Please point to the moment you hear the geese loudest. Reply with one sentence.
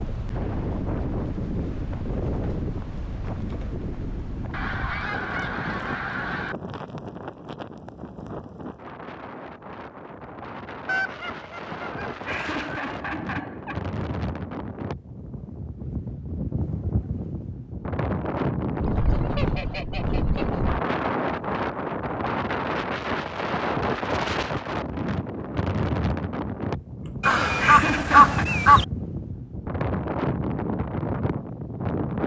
The volume of the geese peaks at 28 seconds.